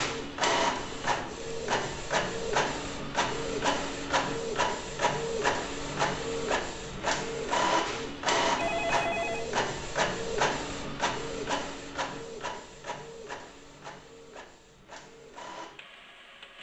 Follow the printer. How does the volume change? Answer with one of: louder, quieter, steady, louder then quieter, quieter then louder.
quieter.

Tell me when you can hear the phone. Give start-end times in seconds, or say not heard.
8.6-9.5.